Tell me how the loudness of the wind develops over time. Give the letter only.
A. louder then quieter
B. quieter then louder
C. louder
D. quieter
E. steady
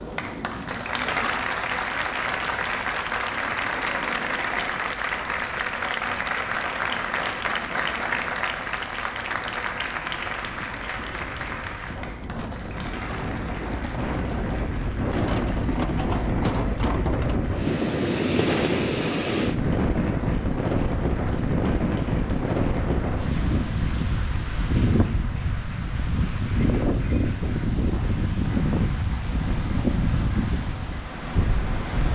C.